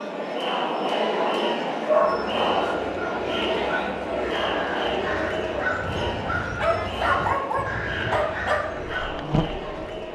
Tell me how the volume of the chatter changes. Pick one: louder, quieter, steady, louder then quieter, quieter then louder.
quieter.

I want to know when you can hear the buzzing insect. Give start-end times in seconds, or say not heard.
8.8-10.1.